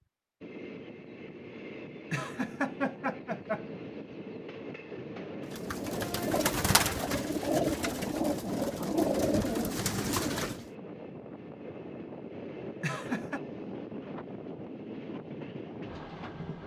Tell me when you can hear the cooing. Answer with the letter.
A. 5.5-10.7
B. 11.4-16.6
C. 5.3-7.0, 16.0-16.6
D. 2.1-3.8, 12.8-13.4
A.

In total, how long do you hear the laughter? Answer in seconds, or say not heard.
2 s.